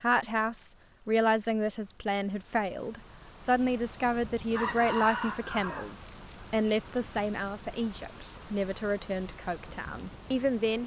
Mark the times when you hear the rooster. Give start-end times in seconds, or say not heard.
4.5-6.0.